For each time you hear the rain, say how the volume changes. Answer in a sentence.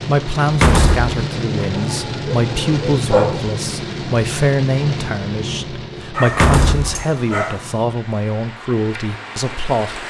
You can hear the rain from 0.0 to 10.0 s, getting quieter.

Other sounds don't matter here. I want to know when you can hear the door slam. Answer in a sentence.
The door slam can be heard from 0.5 to 1.1 s and from 6.2 to 7.0 s.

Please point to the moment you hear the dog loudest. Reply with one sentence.
The loudest moment of the dog is at 3 seconds.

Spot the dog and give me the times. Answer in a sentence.
You can hear the dog from 1.6 to 3.5 s and from 6.1 to 8.0 s.